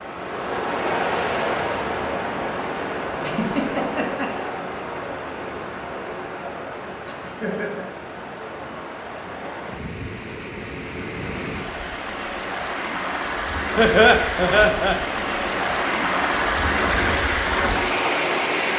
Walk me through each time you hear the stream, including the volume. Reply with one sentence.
You can hear the stream from 0.0 to 18.7 s, getting quieter then louder.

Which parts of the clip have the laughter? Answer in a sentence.
You can hear the laughter from 3.2 to 4.5 s, from 7.0 to 7.8 s and from 13.8 to 14.9 s.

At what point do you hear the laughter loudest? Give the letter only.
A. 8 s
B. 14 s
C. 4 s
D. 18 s
B.